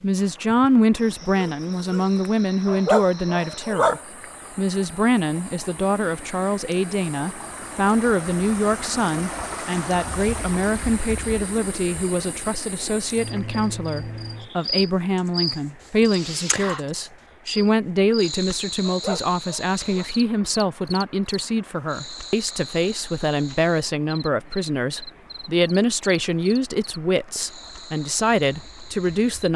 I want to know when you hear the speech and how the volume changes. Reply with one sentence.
The speech can be heard from 0.0 to 29.5 s, at a steady volume.